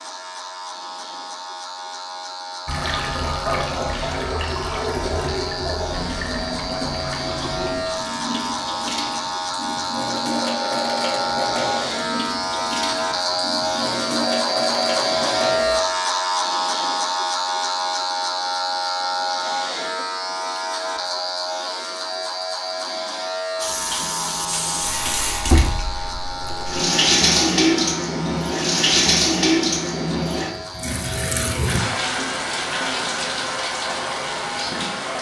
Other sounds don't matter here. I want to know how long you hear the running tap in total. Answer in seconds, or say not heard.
25 s.